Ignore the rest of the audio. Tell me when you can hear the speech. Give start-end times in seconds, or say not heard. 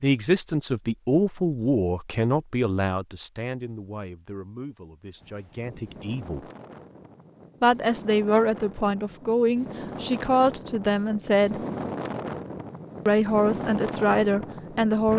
0.0-6.5, 7.6-11.6, 13.1-15.1.